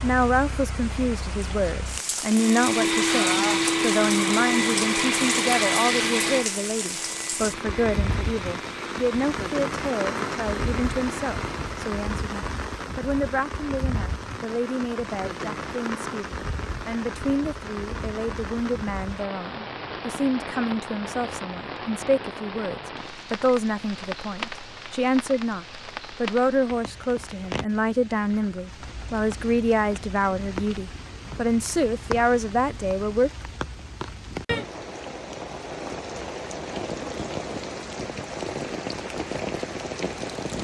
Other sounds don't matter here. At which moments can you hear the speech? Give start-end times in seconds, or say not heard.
0.0-33.3.